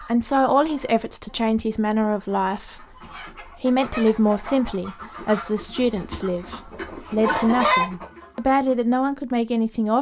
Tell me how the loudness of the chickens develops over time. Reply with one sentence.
The loudness of the chickens goes up.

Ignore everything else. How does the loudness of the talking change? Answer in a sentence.
The loudness of the talking stays about the same.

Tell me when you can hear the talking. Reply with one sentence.
You can hear the talking from 0.0 to 9.9 s.